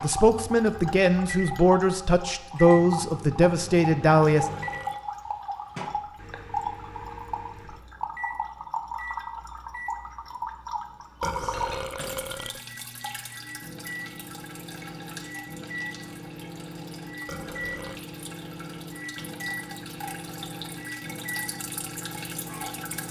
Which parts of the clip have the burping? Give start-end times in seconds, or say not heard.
4.5-5.0, 11.2-12.6, 17.2-18.1.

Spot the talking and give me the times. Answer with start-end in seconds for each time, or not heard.
0.0-4.5.